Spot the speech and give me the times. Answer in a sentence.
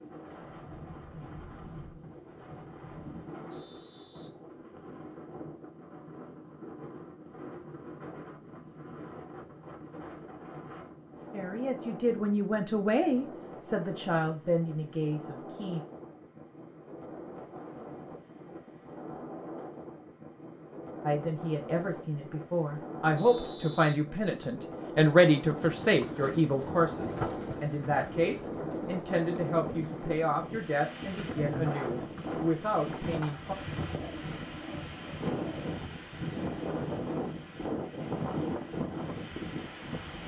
The speech can be heard from 11.3 to 15.8 s and from 21.0 to 33.5 s.